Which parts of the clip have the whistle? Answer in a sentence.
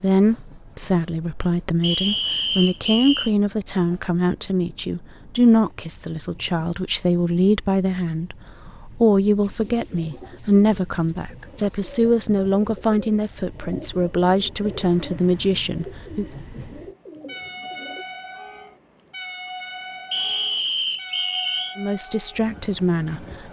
The whistle can be heard from 1.8 to 3.3 s and from 20.1 to 21.8 s.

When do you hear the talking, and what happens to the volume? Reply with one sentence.
The talking can be heard from 0.0 to 16.2 s, at a steady volume; and briefly from 21.8 to 23.4 s.